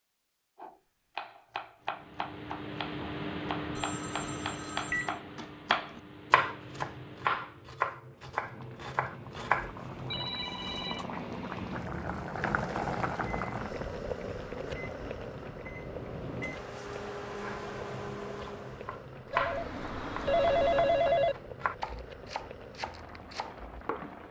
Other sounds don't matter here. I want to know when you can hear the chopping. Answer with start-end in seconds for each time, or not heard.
0.6-10.3, 17.4-24.2.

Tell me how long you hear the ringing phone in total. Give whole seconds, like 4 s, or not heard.
5 s.